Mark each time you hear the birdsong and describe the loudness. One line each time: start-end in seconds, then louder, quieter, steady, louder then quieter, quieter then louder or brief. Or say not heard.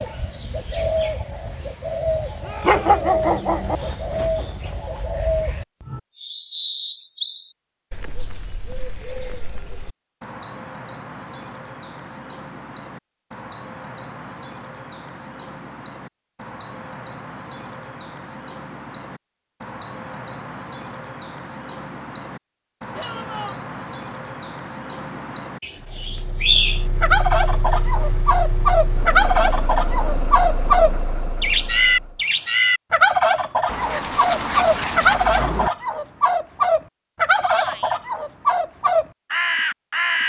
0.0-40.2 louder.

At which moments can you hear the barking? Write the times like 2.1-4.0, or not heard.
2.6-3.8, 33.6-35.7.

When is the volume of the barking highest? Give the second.
3 s.